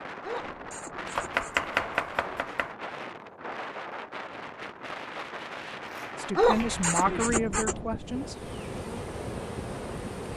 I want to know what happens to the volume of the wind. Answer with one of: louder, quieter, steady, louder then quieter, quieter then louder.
steady.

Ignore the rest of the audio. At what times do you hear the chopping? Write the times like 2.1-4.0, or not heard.
1.1-2.8, 5.8-6.8.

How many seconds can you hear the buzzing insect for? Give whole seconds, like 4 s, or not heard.
2 s.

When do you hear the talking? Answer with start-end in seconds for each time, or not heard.
6.2-8.3.